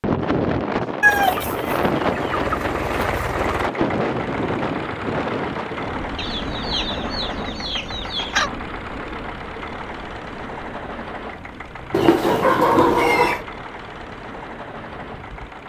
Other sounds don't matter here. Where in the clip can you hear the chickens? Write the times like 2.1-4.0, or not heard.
1.0-3.4, 6.2-8.5, 11.9-13.4.